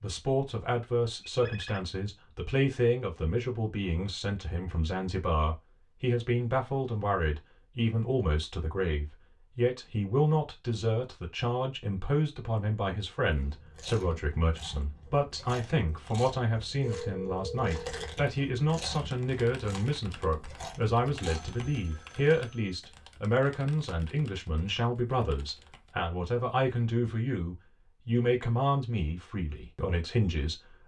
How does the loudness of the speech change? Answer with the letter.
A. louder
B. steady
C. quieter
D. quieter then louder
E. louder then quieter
B.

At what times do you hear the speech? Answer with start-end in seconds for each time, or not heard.
0.0-30.8.